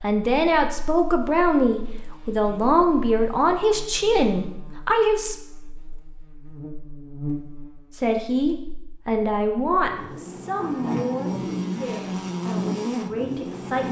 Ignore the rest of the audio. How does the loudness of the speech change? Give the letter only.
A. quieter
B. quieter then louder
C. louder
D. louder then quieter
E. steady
A.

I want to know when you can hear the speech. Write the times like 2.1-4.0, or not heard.
0.0-5.3, 7.9-13.8.